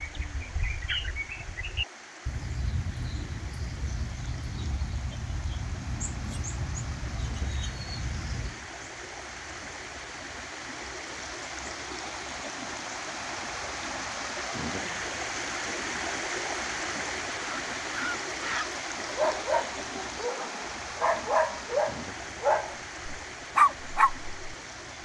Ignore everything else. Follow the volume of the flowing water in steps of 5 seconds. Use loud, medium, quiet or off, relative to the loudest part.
quiet, medium, loud, loud, medium.